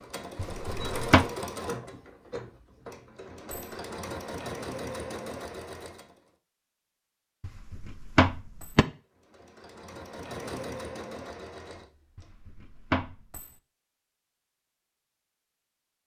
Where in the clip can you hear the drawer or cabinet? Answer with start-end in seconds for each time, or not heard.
0.3-1.3, 7.4-8.8, 12.2-13.2.